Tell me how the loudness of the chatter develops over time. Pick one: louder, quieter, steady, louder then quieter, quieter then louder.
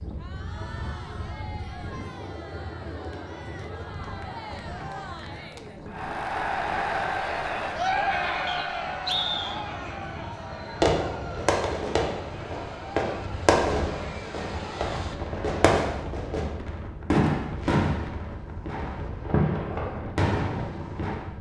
louder then quieter.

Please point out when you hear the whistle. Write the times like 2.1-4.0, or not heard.
8.4-9.6.